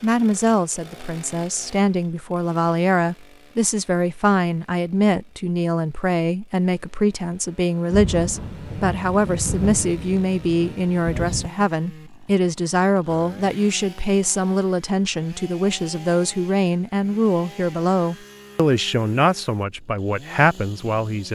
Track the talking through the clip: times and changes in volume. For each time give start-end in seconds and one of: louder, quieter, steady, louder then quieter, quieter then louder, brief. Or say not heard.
0.0-21.3 steady.